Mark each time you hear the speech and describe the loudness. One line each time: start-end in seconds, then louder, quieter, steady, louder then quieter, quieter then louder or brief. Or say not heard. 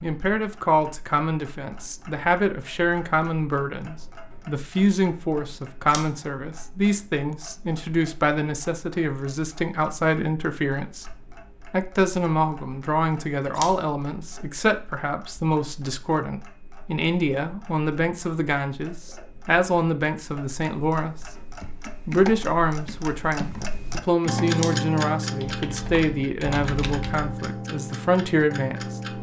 0.0-21.2 steady
21.9-29.1 steady.